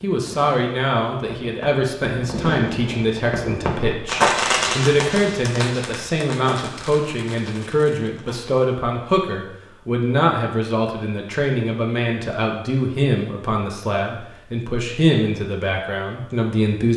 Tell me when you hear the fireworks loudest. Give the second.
4 s.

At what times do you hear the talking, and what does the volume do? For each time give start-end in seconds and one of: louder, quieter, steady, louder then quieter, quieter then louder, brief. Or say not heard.
0.0-16.9 steady.